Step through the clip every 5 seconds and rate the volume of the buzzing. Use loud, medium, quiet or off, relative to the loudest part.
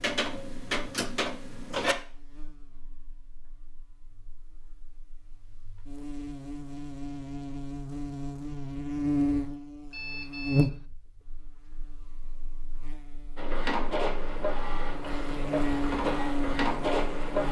quiet, loud, loud, loud.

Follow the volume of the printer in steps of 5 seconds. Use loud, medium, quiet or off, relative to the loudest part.
loud, off, loud, loud.